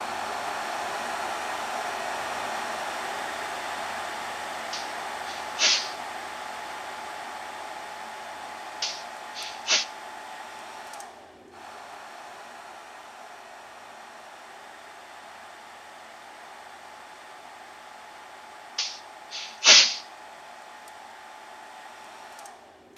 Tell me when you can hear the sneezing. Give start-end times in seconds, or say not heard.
4.7-6.0, 8.8-9.8, 18.8-20.0.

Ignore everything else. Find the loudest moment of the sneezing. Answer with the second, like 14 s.
20 s.